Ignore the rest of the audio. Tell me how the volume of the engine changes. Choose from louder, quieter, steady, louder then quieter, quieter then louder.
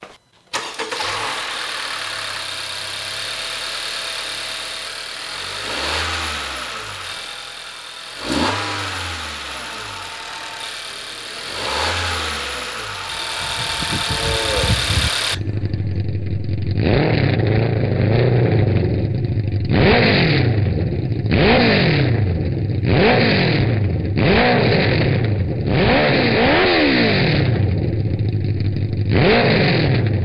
louder.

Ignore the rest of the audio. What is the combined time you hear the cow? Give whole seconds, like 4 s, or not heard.
5 s.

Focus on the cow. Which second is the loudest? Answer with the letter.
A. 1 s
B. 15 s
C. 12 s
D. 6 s
B.